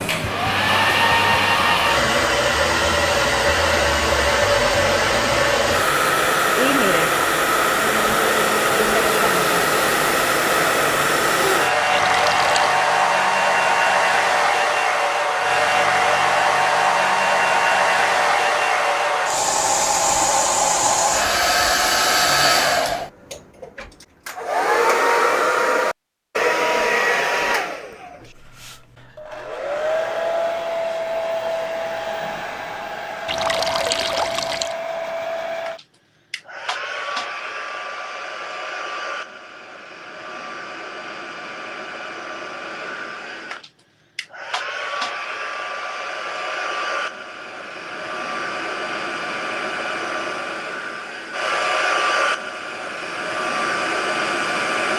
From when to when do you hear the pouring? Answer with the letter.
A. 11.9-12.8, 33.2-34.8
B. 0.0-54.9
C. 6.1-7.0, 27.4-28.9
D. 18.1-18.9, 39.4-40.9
A.